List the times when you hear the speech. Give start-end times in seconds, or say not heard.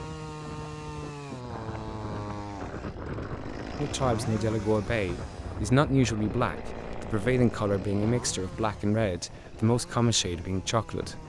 3.8-11.2.